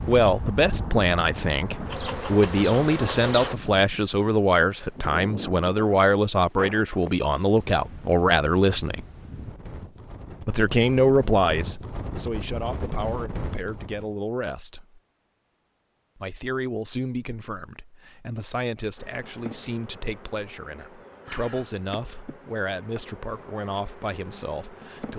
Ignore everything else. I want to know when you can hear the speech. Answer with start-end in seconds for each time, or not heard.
0.1-9.1, 10.4-15.0, 16.1-25.1.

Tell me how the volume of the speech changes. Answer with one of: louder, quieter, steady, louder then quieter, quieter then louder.
quieter.